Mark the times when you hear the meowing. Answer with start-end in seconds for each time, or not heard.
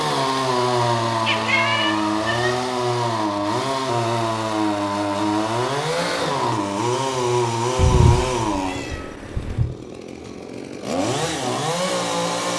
1.2-2.7, 7.8-9.7.